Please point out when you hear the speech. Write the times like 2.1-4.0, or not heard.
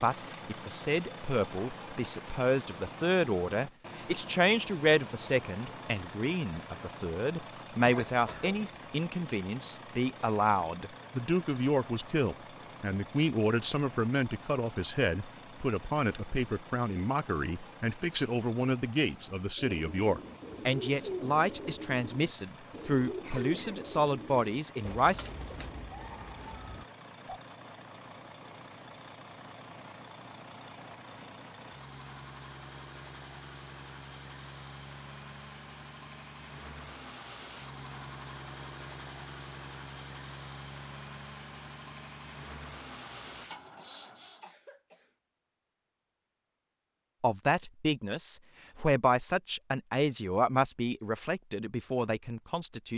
0.0-25.4, 47.2-52.9.